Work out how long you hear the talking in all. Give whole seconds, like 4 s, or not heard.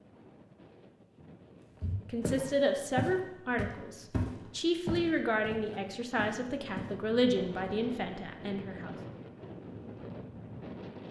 7 s.